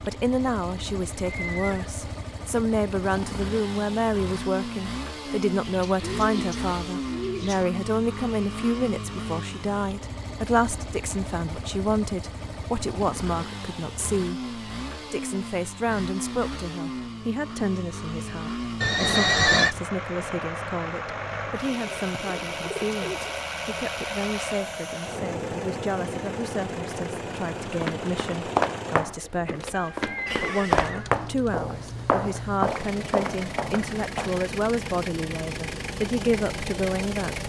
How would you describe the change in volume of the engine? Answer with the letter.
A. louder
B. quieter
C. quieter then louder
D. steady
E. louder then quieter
D.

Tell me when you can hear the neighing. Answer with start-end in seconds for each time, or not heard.
1.4-1.9, 18.8-19.8, 30.1-31.1.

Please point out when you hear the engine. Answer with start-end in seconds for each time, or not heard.
0.0-37.4.